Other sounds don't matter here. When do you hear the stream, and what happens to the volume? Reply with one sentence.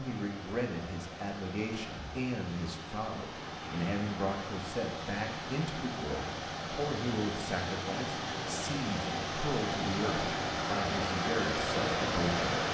The stream can be heard from 0.0 to 12.6 s, getting louder.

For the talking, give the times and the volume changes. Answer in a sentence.
You can hear the talking from 0.0 to 12.6 s, at a steady volume.